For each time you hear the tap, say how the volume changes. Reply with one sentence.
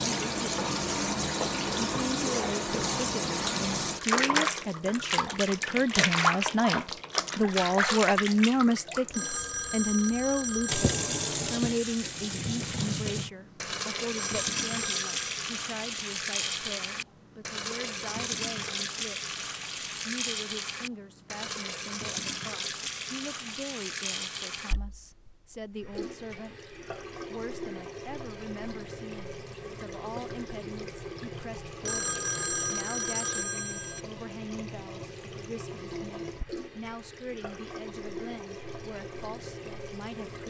The tap can be heard from 0.0 to 40.4 s, getting quieter.